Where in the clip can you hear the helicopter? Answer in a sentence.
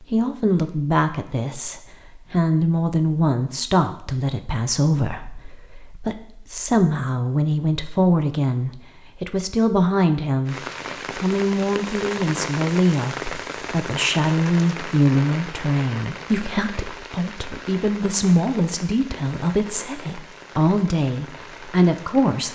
The helicopter can't be heard in this clip.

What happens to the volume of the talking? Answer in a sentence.
The loudness of the talking stays about the same.